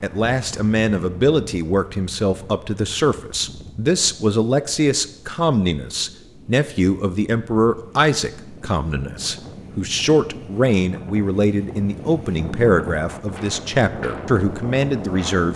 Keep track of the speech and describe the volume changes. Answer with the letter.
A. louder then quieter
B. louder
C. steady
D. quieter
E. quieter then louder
C.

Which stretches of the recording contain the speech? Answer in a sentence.
The speech can be heard from 0.0 to 15.5 s.